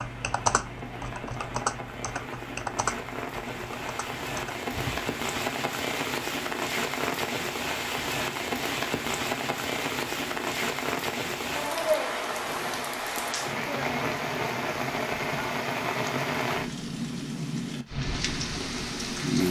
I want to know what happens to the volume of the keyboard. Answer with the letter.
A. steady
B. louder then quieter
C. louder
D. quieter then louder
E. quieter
E.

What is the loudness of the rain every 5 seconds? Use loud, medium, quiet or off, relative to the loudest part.
medium, loud, loud, loud.